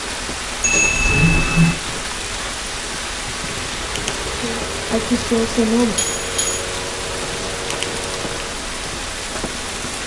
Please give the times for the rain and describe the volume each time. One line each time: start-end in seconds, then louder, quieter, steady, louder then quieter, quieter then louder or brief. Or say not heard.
0.0-10.0 steady.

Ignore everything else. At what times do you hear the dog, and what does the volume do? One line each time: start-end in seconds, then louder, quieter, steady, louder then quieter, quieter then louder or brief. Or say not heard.
not heard.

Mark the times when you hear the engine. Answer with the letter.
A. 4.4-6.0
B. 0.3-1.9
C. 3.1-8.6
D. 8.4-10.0
C.